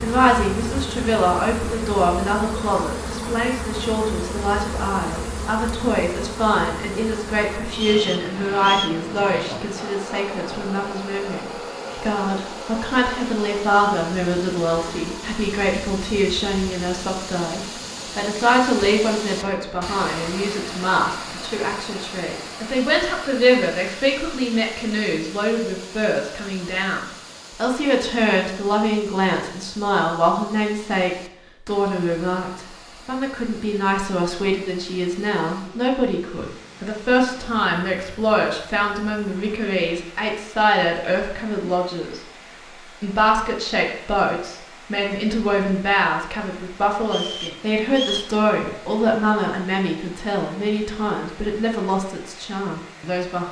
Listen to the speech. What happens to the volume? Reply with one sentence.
The loudness of the speech stays about the same.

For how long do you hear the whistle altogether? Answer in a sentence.
You can hear the whistle for 2 seconds altogether.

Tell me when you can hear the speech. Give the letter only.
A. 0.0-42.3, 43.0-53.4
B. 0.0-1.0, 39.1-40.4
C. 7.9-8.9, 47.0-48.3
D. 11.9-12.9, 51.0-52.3
A.